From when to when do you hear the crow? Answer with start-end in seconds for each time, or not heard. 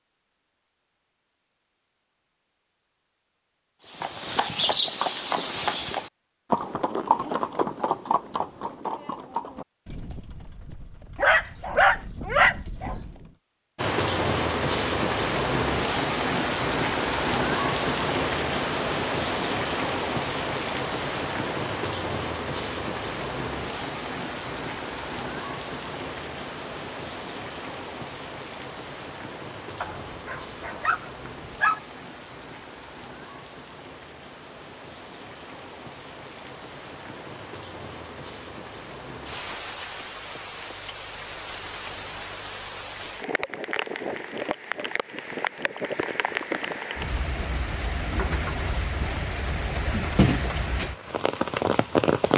not heard.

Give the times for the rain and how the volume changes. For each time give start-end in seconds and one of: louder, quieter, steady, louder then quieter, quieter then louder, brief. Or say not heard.
13.8-52.3 quieter then louder.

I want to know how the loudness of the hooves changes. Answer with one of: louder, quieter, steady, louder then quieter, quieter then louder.
quieter.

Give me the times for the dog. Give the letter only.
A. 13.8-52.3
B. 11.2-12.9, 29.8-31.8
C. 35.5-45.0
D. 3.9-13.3
B.